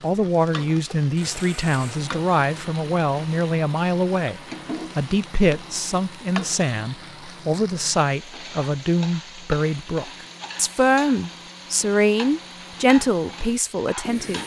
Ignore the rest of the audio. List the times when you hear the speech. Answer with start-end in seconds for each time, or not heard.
0.0-14.4.